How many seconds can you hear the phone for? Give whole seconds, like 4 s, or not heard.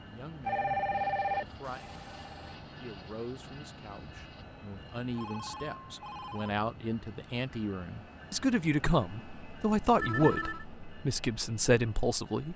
4 s.